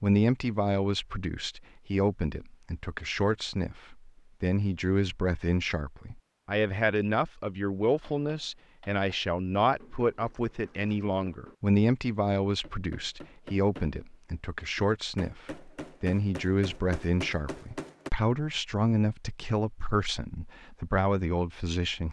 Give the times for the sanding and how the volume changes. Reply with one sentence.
The sanding can't be heard in this clip.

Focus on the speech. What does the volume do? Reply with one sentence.
The volume of the speech stays about the same.